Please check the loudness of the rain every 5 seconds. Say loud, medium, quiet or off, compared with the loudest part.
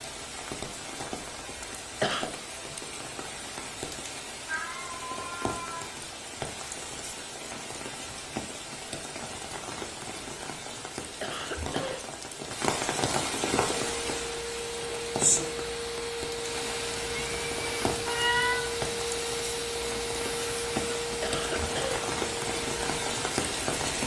medium, medium, loud, loud, loud.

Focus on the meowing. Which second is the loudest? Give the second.
18 s.